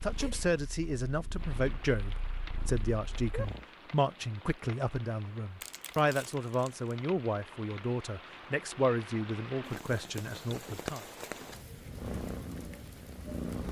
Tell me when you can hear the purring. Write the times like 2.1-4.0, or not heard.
0.0-3.6, 11.9-13.6.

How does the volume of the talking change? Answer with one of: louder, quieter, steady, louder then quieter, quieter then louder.
steady.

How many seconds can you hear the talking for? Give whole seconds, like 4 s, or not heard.
11 s.